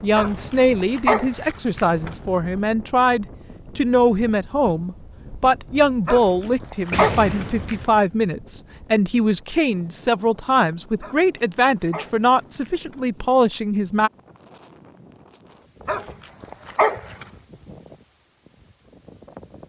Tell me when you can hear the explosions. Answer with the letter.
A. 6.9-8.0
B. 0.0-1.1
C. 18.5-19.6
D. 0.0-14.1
A.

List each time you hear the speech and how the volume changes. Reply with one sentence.
You can hear the speech from 0.0 to 14.1 s, at a steady volume.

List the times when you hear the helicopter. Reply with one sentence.
You can't hear the helicopter here.